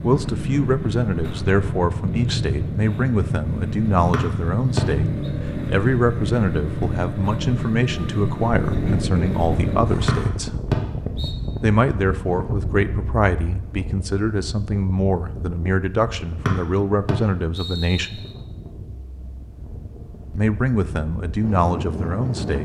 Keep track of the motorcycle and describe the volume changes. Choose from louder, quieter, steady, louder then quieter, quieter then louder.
steady.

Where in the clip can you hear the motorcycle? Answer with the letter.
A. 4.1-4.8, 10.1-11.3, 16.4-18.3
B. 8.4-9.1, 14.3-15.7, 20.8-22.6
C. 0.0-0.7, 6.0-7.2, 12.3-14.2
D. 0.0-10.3
D.